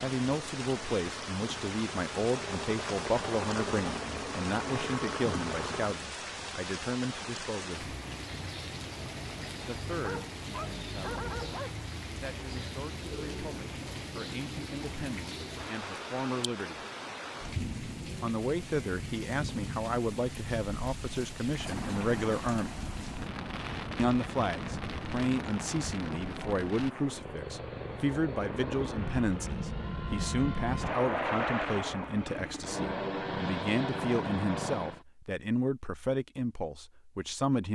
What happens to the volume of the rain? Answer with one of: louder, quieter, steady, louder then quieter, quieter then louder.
steady.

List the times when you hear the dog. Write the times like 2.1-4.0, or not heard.
10.0-11.8.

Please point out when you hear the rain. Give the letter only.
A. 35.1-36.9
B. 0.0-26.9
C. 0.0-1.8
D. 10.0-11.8
B.